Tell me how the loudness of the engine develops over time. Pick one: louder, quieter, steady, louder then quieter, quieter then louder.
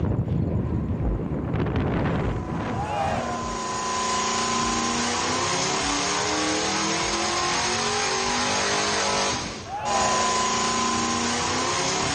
louder.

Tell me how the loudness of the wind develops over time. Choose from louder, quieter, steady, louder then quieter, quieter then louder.
quieter.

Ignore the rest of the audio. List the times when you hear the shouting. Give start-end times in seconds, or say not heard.
2.7-3.6, 9.7-10.3.